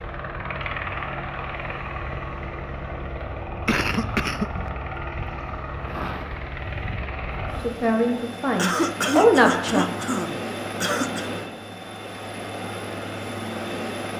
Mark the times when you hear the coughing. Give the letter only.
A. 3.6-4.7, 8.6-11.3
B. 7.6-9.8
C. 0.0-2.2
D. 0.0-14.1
A.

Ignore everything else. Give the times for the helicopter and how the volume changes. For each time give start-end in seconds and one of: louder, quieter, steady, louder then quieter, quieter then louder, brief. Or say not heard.
0.0-14.1 steady.